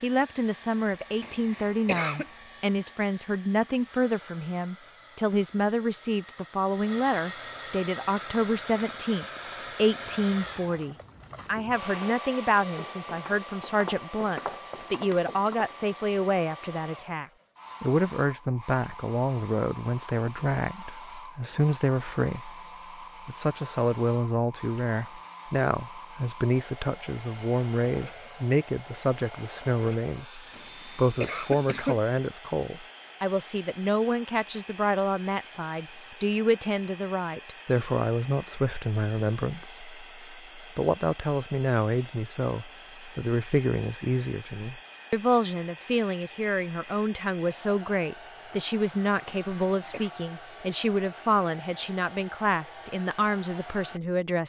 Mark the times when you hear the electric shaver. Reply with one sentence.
The electric shaver can't be heard in this clip.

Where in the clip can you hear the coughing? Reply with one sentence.
The coughing can be heard from 1.2 to 2.2 s, from 30.5 to 32.0 s and from 49.2 to 50.1 s.